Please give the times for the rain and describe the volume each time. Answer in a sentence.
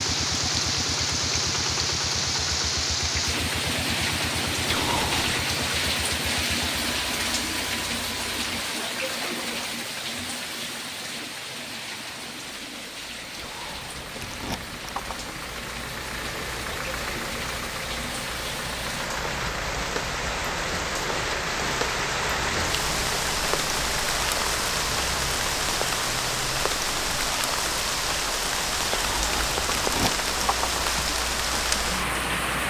The rain can be heard from 0.0 to 32.6 s, getting quieter then louder.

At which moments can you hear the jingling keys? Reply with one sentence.
You can hear the jingling keys from 4.7 to 5.5 s, from 13.3 to 15.3 s and from 28.9 to 30.9 s.